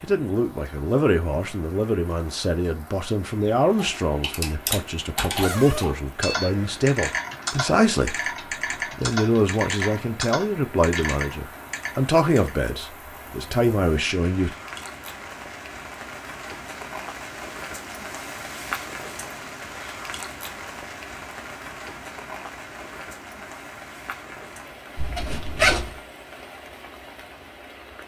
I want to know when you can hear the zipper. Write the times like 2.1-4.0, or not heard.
5.3-6.8, 24.9-25.9.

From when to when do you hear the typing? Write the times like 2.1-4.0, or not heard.
3.6-12.5.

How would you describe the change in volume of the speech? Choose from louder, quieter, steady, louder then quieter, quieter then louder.
steady.